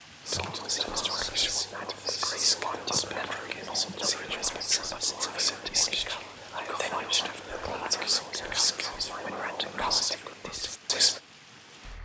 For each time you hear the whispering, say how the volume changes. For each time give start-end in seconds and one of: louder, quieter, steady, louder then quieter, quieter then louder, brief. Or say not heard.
0.2-11.2 steady.